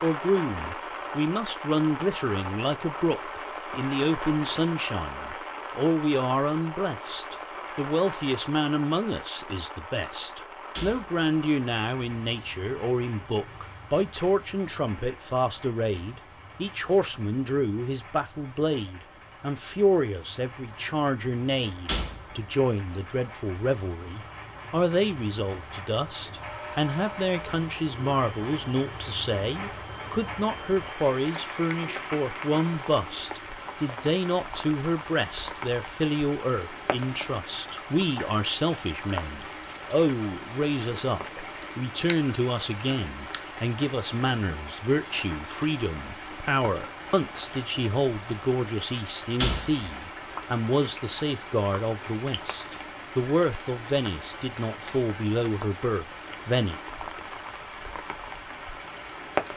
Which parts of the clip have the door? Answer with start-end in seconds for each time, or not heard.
10.8-11.2, 21.6-22.9, 49.1-49.9.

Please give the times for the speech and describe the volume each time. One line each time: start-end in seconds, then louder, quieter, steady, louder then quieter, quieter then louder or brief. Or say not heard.
0.0-56.8 steady.